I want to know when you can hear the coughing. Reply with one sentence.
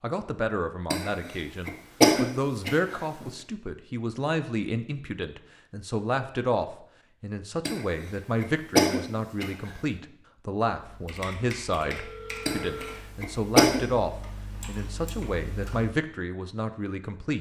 You can hear the coughing from 0.9 to 3.3 s, from 7.7 to 9.8 s and from 12.4 to 13.8 s.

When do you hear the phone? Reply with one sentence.
You can hear the phone from 11.9 to 13.0 s.